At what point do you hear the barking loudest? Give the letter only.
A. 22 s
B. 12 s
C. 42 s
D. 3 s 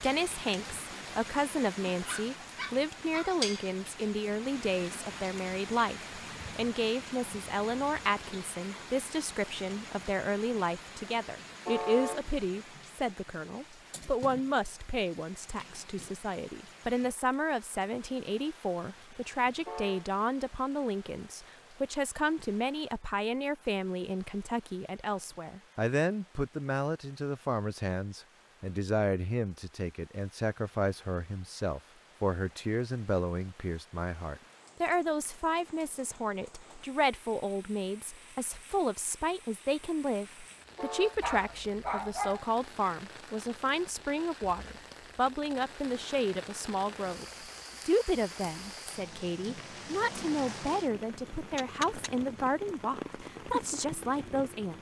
C.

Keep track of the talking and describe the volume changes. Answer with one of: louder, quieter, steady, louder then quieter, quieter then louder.
steady.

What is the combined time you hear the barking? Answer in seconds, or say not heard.
3 s.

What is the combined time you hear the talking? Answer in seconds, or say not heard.
54 s.